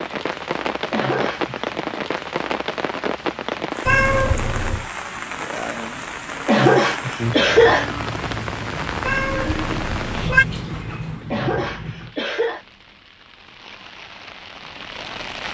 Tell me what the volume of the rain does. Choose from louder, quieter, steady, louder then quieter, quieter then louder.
quieter.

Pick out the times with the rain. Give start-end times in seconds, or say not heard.
0.0-15.4.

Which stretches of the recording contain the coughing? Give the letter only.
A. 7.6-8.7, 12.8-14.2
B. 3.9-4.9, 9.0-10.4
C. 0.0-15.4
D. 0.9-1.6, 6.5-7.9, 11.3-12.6
D.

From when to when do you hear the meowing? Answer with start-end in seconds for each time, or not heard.
3.9-4.9, 9.0-10.4.